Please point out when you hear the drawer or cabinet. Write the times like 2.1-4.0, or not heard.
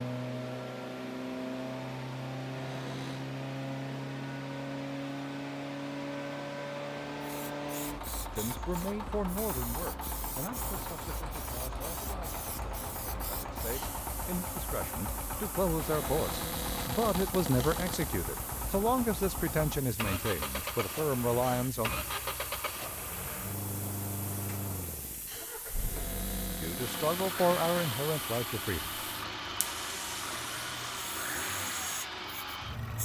2.5-3.3, 15.8-18.1, 25.8-28.0.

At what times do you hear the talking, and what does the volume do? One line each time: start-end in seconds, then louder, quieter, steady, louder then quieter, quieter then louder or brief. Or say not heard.
8.3-21.9 quieter then louder
26.6-28.9 brief.